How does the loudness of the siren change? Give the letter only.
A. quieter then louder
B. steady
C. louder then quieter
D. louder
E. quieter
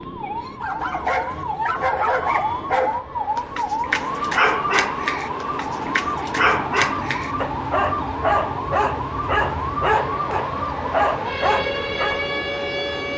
B.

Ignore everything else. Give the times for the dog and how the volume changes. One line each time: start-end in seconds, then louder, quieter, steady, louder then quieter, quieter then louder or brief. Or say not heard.
0.6-12.2 steady.